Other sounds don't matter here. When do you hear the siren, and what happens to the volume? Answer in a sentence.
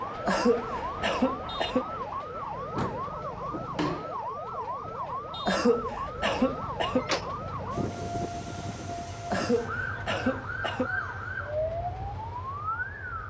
You can hear the siren from 0.0 to 13.2 s, at a steady volume.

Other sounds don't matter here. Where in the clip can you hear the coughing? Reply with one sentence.
The coughing can be heard from 0.2 to 1.9 s, from 5.5 to 7.0 s and from 9.3 to 10.9 s.